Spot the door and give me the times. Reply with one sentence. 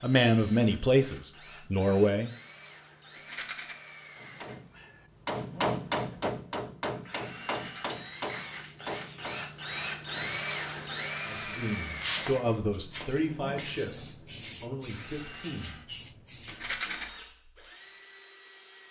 You can't hear the door here.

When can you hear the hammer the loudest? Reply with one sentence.
The volume of the hammer peaks at 6 seconds.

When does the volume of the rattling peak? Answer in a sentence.
The volume of the rattling peaks at 17 seconds.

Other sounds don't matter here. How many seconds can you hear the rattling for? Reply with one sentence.
You can hear the rattling for 2 seconds altogether.